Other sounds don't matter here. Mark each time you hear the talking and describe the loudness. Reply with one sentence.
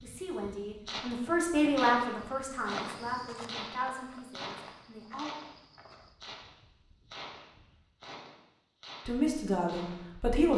The talking can be heard from 0.0 to 5.3 s, getting louder then quieter; and briefly from 9.1 to 10.5 s.